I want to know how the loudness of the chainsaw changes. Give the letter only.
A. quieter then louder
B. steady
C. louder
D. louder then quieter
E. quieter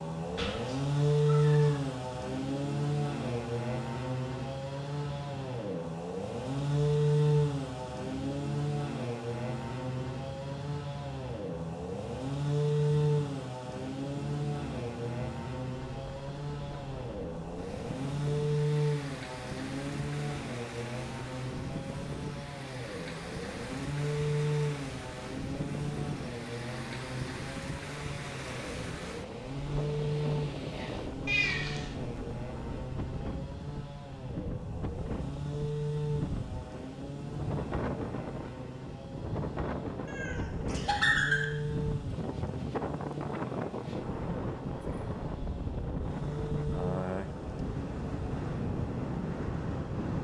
E.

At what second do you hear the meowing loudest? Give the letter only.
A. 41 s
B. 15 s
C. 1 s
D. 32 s
A.